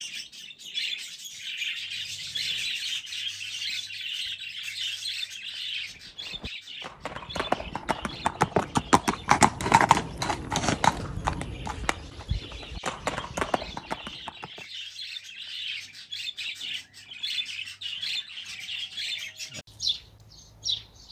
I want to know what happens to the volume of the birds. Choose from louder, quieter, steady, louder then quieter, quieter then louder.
quieter then louder.